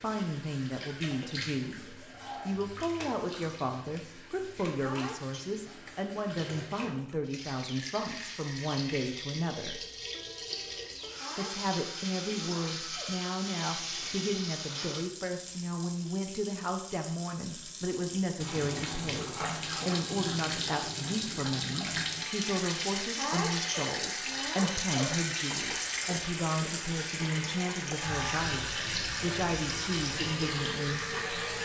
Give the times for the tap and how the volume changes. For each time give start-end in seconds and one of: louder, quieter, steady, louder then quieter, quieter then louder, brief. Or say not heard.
0.0-31.6 louder.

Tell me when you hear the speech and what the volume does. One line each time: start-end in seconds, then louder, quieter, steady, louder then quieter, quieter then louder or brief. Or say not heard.
0.0-9.8 steady
11.3-31.1 steady.